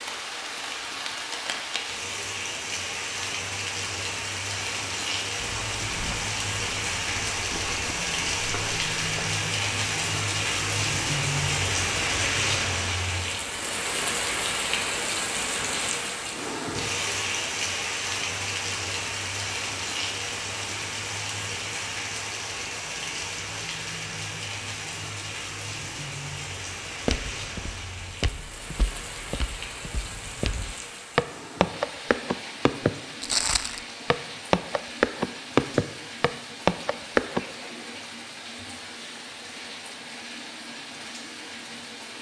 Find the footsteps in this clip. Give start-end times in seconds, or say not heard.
5.4-9.3, 27.1-37.4.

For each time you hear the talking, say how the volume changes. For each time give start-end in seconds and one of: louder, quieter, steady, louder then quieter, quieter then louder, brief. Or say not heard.
not heard.